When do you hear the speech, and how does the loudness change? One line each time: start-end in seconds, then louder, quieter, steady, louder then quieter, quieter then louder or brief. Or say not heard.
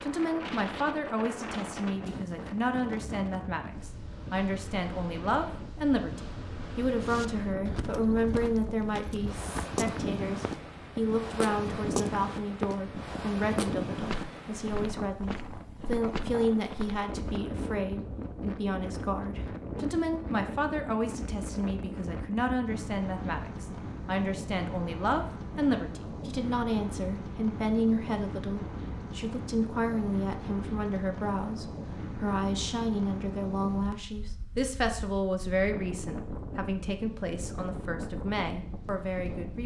0.0-39.6 steady.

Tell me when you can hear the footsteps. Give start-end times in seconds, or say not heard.
7.0-17.4.